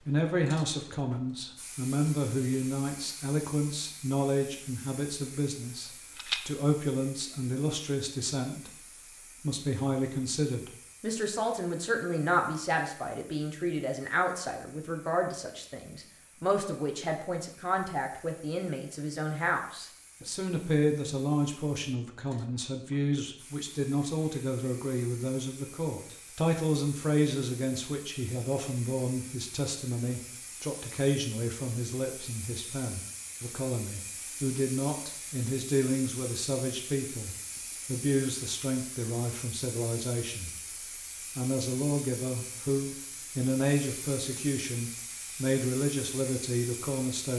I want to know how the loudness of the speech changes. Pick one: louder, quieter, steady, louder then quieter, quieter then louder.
steady.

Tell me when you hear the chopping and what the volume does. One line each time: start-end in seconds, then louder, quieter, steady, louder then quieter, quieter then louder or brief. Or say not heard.
not heard.